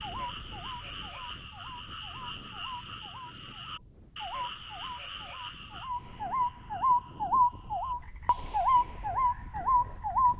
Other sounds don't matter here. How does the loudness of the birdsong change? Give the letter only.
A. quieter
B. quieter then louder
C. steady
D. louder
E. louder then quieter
D.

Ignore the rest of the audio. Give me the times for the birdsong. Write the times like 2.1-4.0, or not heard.
0.0-10.3.